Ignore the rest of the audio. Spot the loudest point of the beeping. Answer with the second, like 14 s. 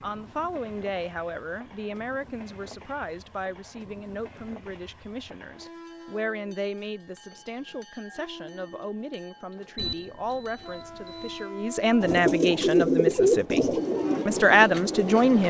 10 s.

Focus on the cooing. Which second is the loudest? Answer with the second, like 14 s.
13 s.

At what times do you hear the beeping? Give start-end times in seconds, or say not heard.
9.8-11.4.